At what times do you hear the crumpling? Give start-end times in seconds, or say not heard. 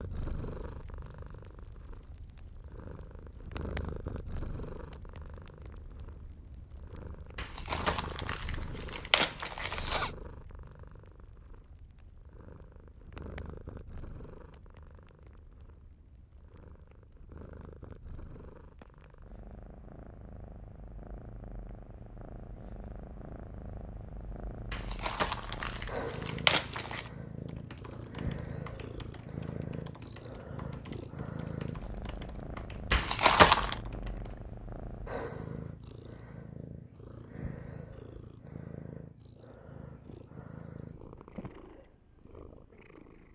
7.3-10.1, 24.7-27.1, 32.9-33.8.